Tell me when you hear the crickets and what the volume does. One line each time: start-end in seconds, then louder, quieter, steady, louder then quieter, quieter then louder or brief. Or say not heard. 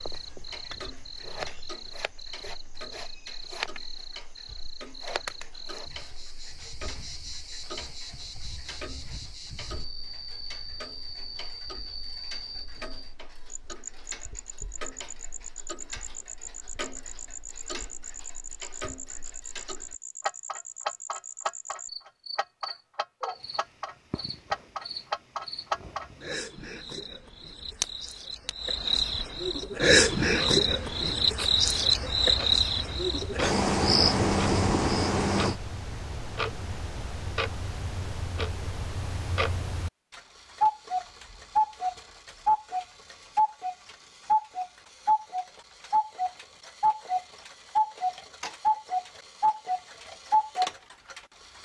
0.0-35.5 louder.